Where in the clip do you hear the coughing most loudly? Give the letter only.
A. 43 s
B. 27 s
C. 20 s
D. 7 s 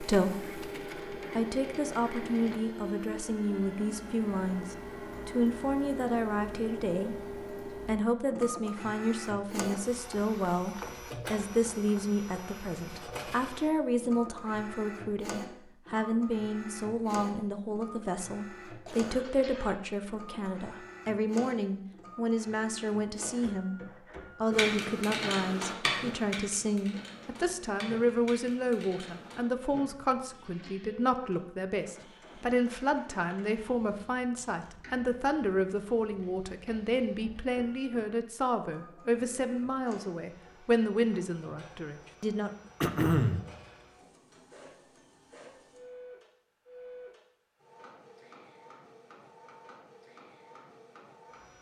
A.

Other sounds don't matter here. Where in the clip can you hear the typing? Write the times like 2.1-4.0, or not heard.
24.5-29.4.